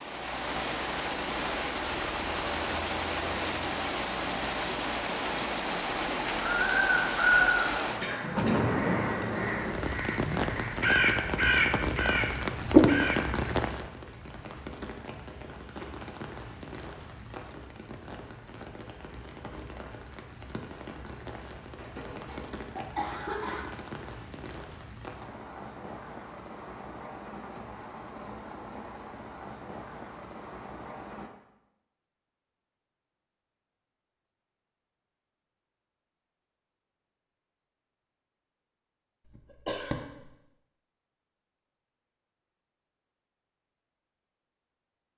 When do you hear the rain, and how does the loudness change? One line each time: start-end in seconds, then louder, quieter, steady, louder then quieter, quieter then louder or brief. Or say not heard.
0.0-31.3 quieter.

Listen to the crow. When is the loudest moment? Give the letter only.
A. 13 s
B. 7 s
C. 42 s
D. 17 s
A.